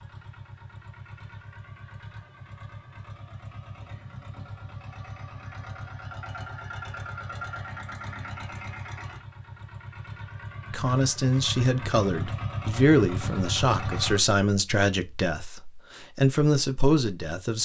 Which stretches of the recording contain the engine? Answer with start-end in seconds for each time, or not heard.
0.0-14.2.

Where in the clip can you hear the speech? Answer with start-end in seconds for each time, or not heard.
10.7-17.6.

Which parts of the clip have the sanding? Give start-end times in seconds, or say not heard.
not heard.